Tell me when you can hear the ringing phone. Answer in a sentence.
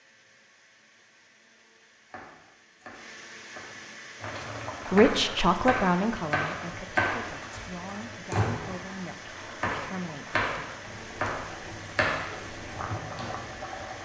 You can't hear the ringing phone here.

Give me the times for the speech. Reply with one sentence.
The speech can be heard from 4.9 to 10.5 s.